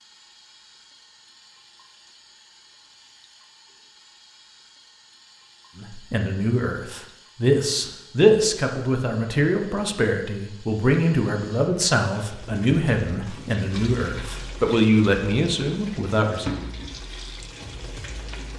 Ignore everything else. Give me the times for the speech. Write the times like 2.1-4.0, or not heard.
5.8-16.5.